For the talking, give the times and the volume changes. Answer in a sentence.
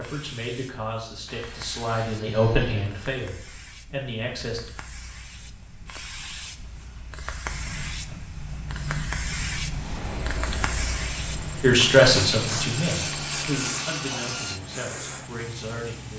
You can hear the talking from 0.0 to 4.6 s, getting louder then quieter; and from 11.6 to 16.1 s, getting quieter.